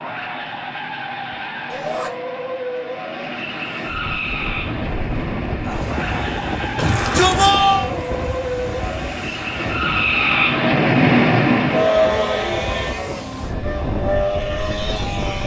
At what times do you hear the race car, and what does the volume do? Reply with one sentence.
You can hear the race car from 0.0 to 15.4 s, getting louder then quieter.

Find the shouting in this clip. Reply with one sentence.
The shouting can be heard from 1.7 to 2.1 s, from 6.8 to 7.9 s and from 12.1 to 13.2 s.